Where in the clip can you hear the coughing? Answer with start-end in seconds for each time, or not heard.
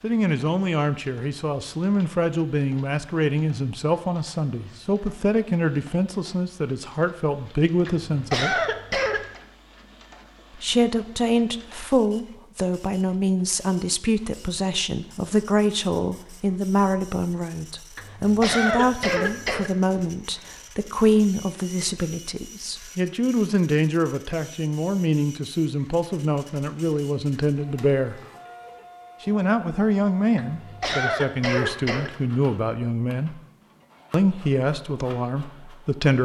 7.8-9.4, 17.9-19.7, 30.4-32.1.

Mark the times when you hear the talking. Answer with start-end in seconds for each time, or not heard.
0.0-8.6, 10.6-28.2, 29.2-33.4, 34.1-36.2.